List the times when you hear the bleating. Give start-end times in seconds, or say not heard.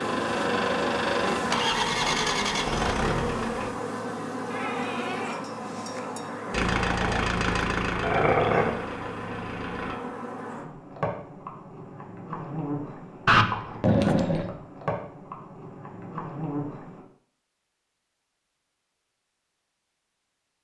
4.5-6.3.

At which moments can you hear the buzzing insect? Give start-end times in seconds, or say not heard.
0.0-17.1.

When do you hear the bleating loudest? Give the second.
5 s.